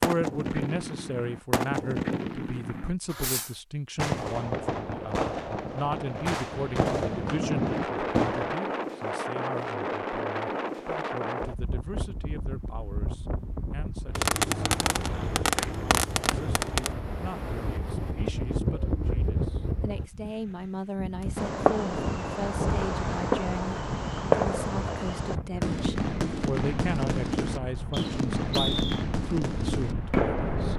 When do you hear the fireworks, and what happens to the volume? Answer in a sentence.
The fireworks can be heard from 0.0 to 8.6 s, at a steady volume; briefly from 14.2 to 16.9 s; and from 21.2 to 30.7 s, at a steady volume.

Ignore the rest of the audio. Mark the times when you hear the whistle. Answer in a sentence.
The whistle can be heard from 27.9 to 29.1 s.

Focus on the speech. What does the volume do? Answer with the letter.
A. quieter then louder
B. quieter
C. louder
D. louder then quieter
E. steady
A.